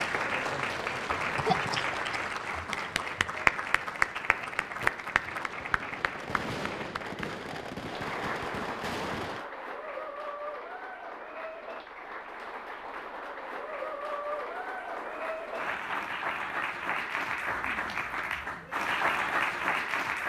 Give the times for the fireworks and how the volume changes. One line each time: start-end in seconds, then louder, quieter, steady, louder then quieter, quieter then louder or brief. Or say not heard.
3.4-9.4 louder.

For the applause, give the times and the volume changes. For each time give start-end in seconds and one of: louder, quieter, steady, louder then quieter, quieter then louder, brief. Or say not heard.
0.0-20.2 quieter then louder.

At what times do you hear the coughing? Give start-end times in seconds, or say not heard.
1.4-2.6.